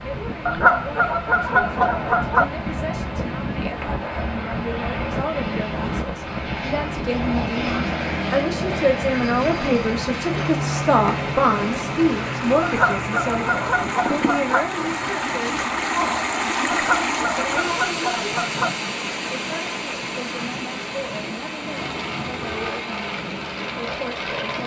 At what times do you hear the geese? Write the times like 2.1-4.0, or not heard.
0.5-2.5, 12.6-14.7, 16.7-18.7.